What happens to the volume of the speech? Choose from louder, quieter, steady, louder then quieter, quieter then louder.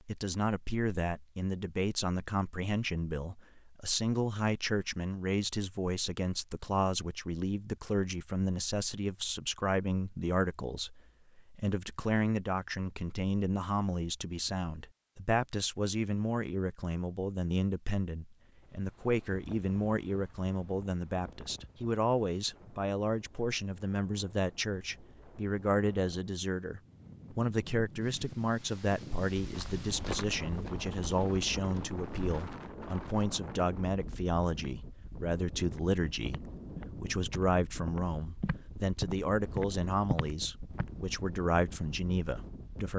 steady.